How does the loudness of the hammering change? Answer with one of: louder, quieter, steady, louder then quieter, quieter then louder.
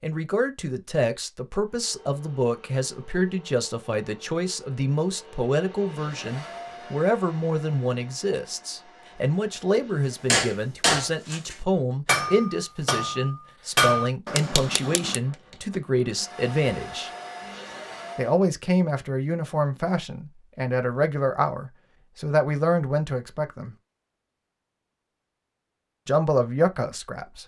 quieter.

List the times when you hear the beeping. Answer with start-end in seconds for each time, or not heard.
not heard.